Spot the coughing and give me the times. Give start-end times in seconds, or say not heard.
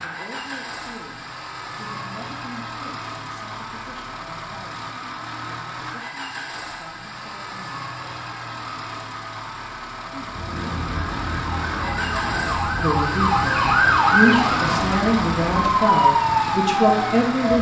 not heard.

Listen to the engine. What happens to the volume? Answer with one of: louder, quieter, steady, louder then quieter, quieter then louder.
louder.